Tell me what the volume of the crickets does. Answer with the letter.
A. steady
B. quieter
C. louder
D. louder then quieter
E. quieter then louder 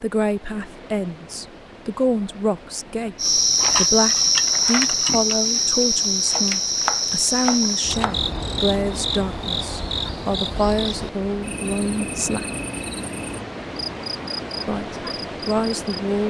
B.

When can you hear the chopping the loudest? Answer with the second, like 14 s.
7 s.